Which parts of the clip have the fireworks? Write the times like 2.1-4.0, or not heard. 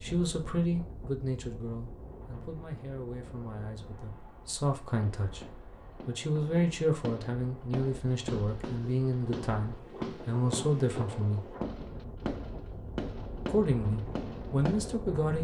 4.8-14.9.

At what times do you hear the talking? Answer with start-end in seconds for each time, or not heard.
0.0-11.6, 13.4-15.4.